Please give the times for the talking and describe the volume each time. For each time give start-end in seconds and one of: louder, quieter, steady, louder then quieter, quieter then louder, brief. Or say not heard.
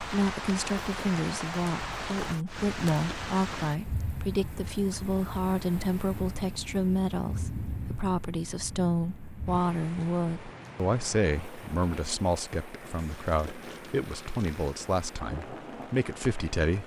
0.0-16.8 steady.